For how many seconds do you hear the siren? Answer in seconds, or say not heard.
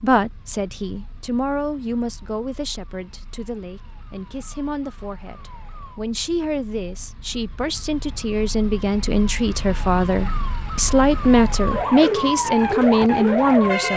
14 s.